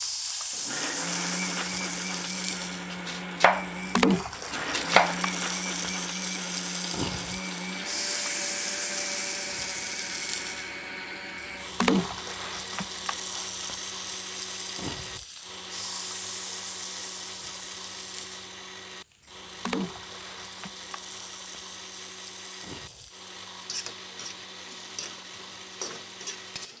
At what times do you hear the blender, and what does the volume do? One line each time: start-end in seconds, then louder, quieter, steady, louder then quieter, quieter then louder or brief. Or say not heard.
0.0-26.7 quieter.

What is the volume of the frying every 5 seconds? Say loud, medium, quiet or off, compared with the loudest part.
loud, loud, loud, medium, quiet, medium.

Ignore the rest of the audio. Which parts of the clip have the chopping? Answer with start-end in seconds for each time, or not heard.
2.9-5.2.